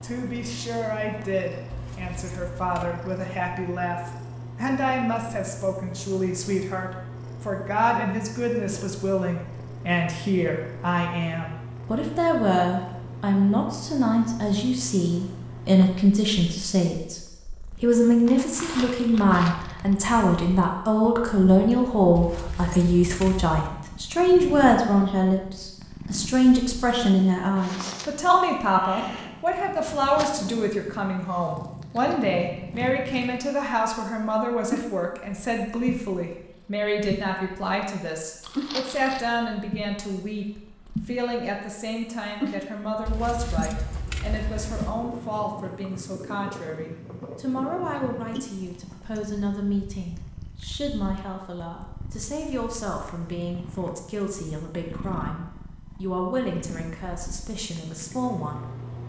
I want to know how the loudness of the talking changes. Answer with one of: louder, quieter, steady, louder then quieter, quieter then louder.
louder then quieter.